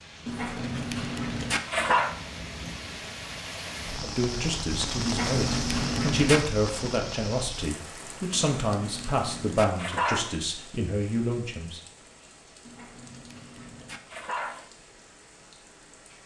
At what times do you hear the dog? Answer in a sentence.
The dog can be heard from 0.2 to 2.1 s, from 5.0 to 6.4 s, from 8.3 to 10.3 s and from 12.7 to 14.7 s.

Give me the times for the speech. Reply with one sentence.
You can hear the speech from 4.0 to 11.8 s.